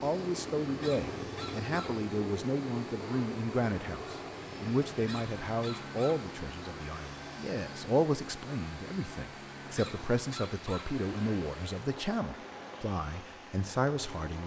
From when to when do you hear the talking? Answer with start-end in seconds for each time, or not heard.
0.0-14.4.